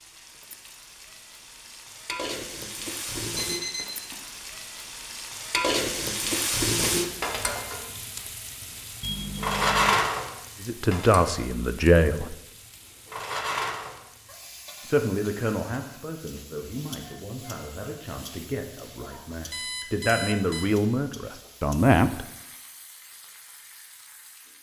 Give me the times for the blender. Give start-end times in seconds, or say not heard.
not heard.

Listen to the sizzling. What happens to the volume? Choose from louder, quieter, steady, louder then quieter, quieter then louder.
louder then quieter.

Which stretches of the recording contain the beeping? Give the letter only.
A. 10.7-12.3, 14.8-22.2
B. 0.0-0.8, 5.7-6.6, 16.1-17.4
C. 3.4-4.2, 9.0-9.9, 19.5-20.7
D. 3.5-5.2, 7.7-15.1
C.